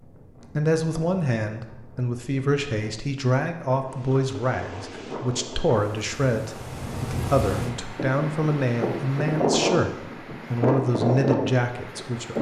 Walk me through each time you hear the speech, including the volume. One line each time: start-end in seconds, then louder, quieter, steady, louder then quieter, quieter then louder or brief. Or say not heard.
0.6-12.3 steady.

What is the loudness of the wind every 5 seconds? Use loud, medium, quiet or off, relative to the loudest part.
quiet, loud, loud.